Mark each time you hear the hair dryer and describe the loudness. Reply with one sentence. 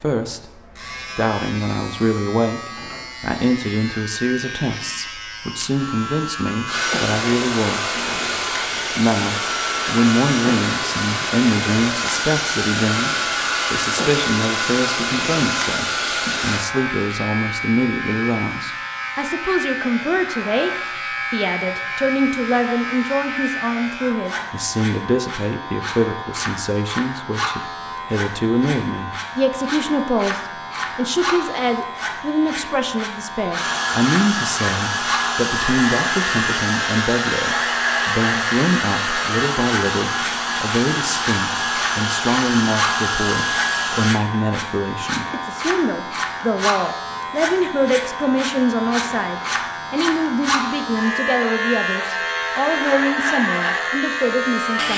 You can hear the hair dryer from 6.7 to 16.6 s, at a steady volume; and from 33.5 to 44.2 s, at a steady volume.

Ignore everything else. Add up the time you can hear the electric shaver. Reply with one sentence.
The electric shaver can be heard for 55 seconds in total.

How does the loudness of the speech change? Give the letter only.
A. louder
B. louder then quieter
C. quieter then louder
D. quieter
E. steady
E.